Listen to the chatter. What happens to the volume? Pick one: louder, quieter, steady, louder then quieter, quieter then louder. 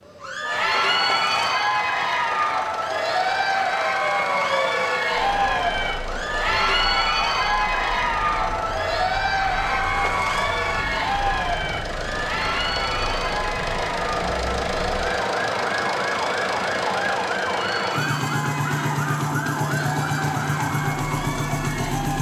quieter.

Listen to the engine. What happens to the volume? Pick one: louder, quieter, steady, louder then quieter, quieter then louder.
louder.